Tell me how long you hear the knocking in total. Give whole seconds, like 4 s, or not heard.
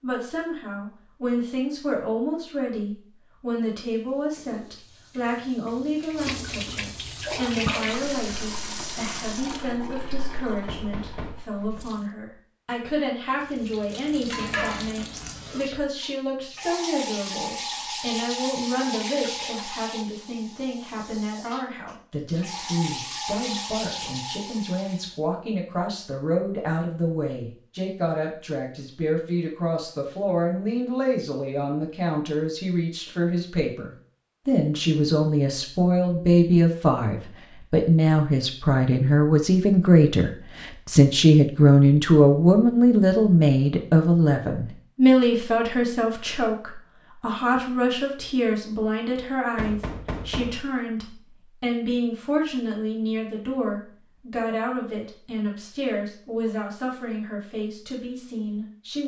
2 s.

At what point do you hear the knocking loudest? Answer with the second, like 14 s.
50 s.